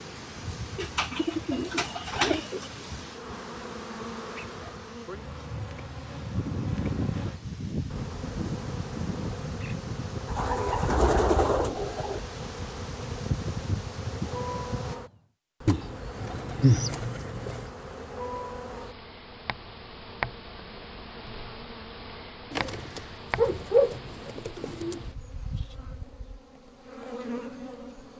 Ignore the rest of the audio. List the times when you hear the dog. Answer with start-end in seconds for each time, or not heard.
not heard.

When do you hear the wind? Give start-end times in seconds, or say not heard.
0.0-14.9.